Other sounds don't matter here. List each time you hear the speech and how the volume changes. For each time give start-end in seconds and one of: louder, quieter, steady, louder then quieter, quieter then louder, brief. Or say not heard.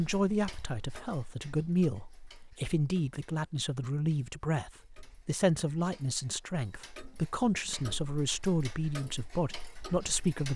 0.0-10.5 steady.